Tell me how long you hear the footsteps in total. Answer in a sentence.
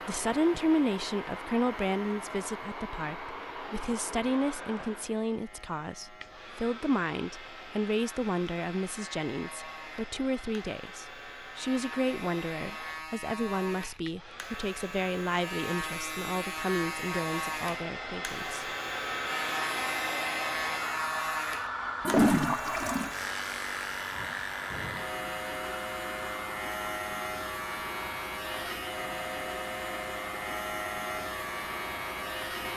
The footsteps can't be heard in this clip.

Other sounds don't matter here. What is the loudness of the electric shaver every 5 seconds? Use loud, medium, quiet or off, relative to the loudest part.
medium, quiet, medium, loud, loud, loud, loud.